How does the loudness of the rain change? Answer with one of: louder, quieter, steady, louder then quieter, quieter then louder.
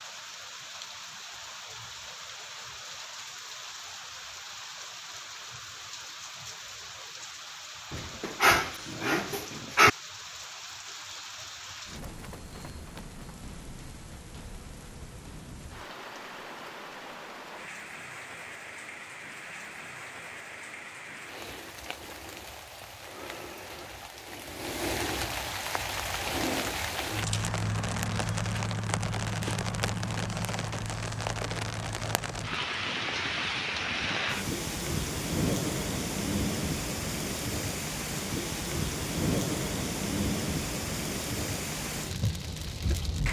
louder.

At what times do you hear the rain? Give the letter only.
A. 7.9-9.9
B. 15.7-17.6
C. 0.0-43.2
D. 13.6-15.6
C.